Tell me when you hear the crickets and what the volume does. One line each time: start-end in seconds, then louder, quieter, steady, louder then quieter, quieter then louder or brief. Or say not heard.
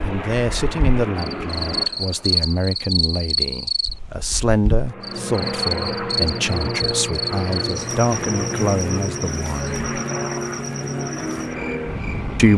0.0-12.5 quieter.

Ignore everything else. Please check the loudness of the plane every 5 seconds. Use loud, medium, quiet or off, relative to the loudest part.
medium, loud, loud.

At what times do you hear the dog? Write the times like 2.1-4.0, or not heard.
not heard.